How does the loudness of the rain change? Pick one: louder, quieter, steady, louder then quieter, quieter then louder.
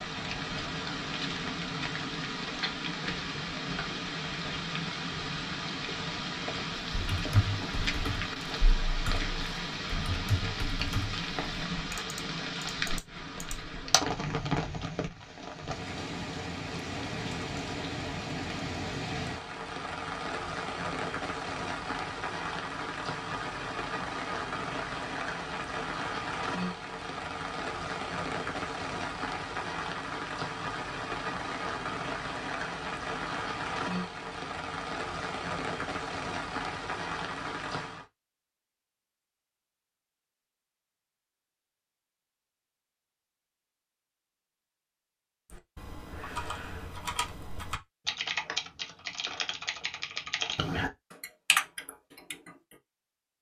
steady.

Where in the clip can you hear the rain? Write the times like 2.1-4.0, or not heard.
0.0-38.0.